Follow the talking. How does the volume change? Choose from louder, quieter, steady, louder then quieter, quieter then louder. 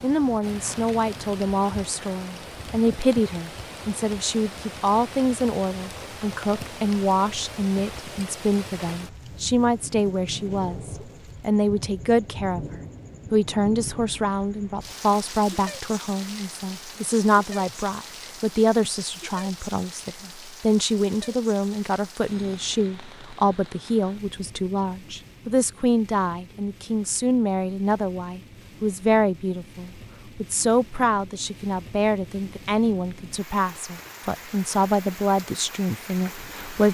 steady.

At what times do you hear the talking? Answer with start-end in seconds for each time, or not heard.
0.0-36.8.